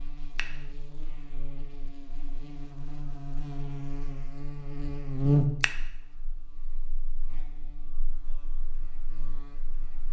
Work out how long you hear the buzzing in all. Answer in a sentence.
You can hear the buzzing for 10 seconds altogether.